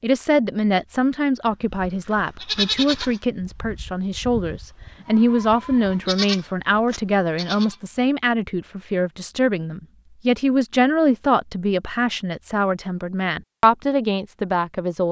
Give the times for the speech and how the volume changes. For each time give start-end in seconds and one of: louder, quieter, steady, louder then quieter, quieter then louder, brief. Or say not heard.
0.0-15.0 steady.